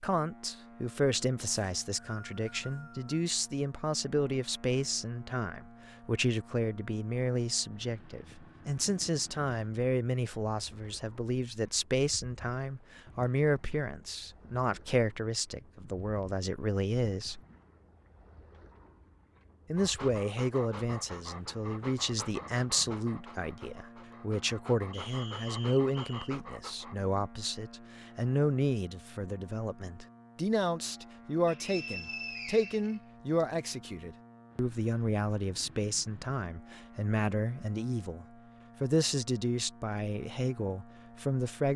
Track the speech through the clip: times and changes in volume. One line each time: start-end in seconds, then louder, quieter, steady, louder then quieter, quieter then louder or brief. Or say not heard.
0.0-17.4 steady
19.7-41.7 steady.